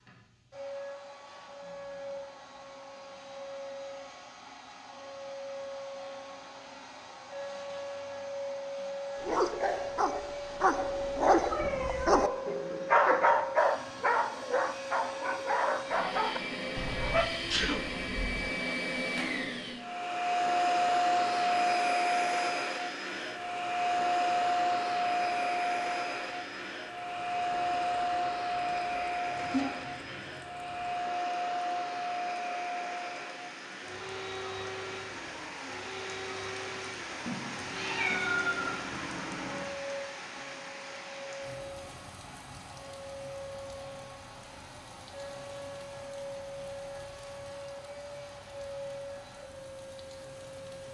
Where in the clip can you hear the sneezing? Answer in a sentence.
The sneezing can be heard from 17.2 to 18.4 s.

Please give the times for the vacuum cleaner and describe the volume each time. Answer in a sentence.
The vacuum cleaner can be heard from 0.0 to 50.8 s, getting louder then quieter.